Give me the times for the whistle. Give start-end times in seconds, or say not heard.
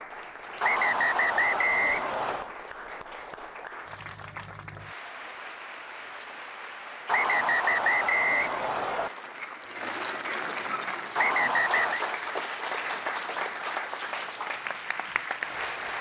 0.6-2.5, 7.0-9.1, 11.2-12.1.